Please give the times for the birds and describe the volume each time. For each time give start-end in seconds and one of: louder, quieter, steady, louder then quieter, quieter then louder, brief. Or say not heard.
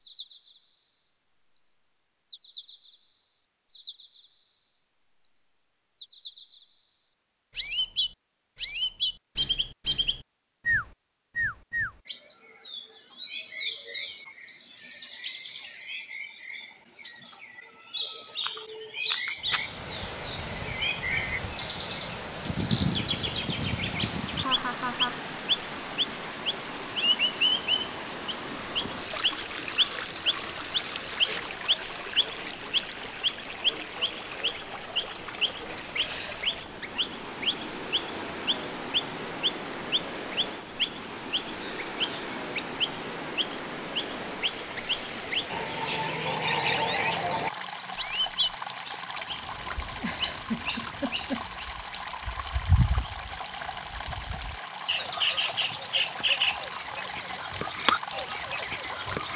0.0-59.3 steady.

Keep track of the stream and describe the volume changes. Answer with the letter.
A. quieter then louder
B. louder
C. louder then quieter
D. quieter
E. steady
E.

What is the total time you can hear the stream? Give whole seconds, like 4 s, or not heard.
40 s.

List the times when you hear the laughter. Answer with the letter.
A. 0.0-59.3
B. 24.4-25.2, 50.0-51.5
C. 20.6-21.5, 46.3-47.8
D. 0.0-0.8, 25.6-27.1
B.